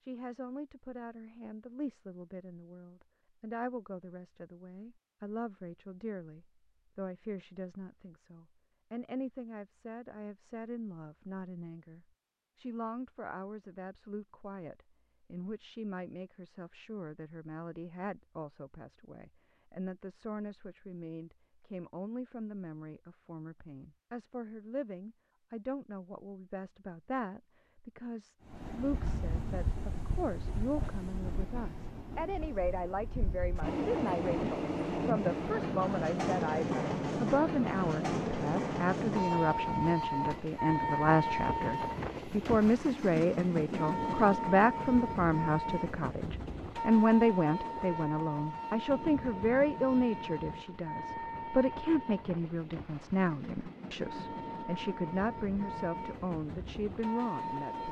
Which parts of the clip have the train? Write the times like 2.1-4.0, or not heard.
28.4-57.8.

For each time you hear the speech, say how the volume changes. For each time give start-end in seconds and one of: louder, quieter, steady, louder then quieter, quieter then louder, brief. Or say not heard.
0.0-57.8 louder.